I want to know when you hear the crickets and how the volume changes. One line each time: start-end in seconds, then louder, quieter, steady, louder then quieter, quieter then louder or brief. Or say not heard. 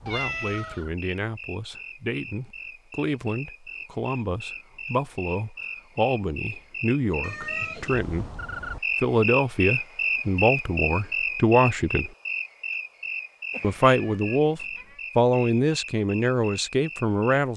0.0-17.5 louder then quieter.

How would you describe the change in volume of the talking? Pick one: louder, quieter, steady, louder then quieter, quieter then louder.
louder.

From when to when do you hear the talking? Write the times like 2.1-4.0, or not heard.
0.0-8.4, 9.0-12.1, 13.6-17.5.